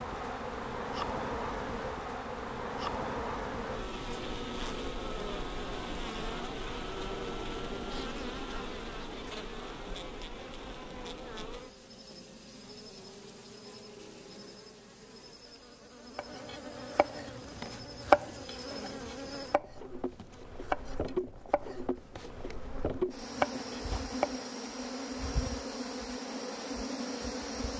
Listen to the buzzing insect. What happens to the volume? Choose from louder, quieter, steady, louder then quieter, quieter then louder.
quieter then louder.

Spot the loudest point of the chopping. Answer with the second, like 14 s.
18 s.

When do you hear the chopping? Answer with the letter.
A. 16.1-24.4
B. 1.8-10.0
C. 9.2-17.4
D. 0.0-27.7
A.